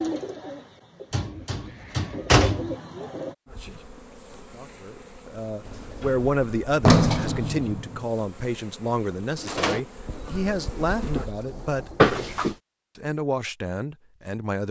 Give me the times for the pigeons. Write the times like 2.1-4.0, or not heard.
0.0-3.4, 9.3-12.2.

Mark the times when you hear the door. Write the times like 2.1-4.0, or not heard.
1.1-2.8, 5.7-8.1, 11.9-12.6.